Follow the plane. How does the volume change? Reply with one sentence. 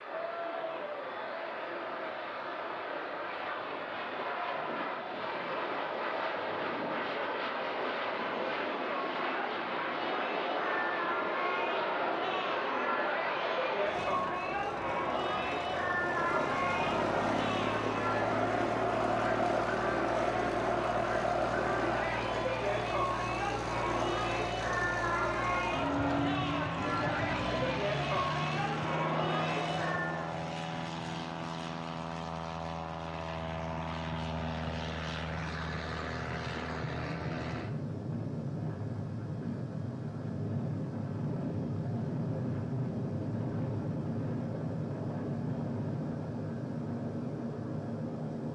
The loudness of the plane stays about the same.